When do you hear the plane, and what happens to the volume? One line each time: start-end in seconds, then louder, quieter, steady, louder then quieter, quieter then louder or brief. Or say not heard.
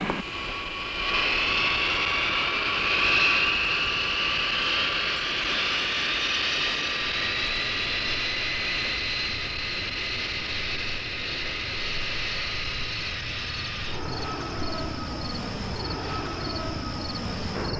0.0-17.7 quieter.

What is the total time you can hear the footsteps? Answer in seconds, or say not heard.
not heard.